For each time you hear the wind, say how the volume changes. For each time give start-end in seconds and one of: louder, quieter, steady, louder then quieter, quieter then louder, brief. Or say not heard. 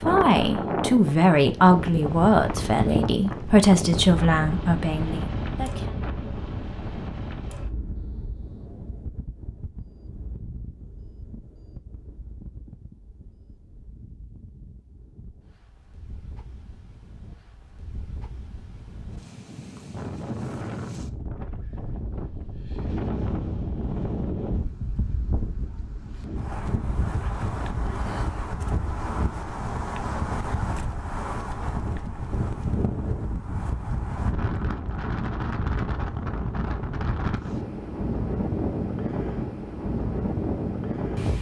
0.0-41.3 quieter then louder.